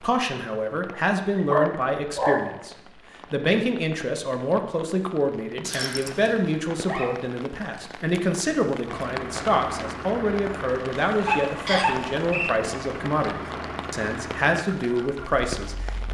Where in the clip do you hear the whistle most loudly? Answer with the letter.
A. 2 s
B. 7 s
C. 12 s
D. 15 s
C.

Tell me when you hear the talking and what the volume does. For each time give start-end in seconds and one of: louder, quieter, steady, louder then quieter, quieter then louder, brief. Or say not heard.
0.0-16.0 steady.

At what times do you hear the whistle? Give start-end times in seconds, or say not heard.
5.6-6.3, 11.7-12.6.